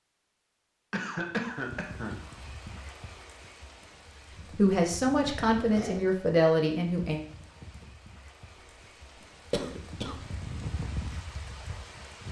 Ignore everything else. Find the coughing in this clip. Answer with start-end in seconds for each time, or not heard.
0.9-2.2, 5.5-6.1, 9.2-10.2.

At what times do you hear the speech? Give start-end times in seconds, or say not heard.
4.5-7.2.